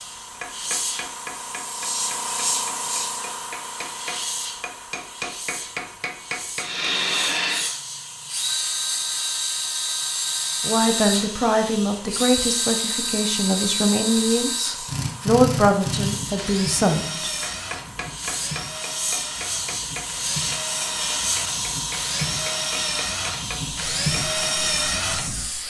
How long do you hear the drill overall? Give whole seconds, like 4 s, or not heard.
19 s.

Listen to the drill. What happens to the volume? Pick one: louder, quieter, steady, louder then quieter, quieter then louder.
quieter then louder.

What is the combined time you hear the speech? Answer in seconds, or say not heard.
7 s.